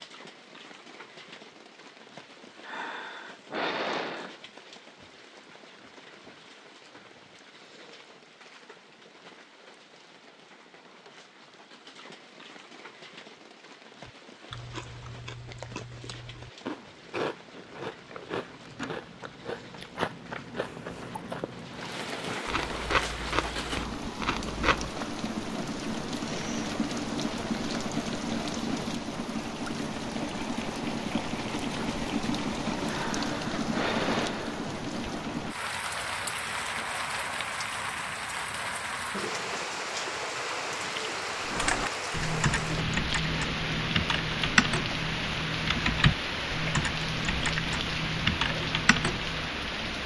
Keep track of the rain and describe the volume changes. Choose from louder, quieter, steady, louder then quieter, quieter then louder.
louder.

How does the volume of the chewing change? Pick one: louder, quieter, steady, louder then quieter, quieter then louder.
louder.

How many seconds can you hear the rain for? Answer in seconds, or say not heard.
50 s.